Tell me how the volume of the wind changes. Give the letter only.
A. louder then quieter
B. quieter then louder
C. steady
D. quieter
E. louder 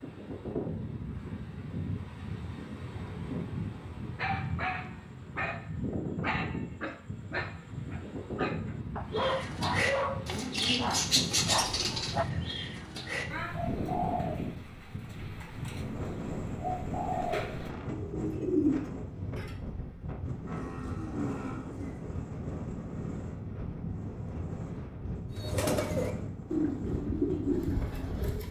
C.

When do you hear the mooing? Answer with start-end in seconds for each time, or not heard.
20.4-22.0.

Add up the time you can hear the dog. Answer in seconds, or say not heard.
8 s.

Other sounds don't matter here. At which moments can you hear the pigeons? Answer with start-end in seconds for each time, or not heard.
9.2-19.5, 25.3-28.4.